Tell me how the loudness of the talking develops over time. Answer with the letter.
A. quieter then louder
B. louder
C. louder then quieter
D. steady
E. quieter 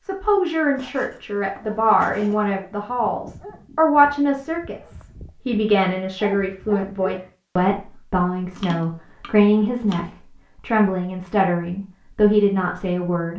D.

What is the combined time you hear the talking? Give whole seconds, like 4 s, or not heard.
13 s.